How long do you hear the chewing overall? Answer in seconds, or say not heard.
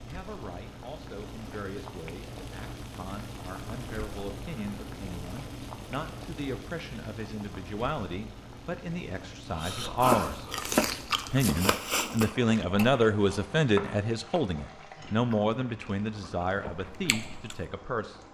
8 s.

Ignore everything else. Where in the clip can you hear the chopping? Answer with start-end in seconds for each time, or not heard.
10.0-11.7.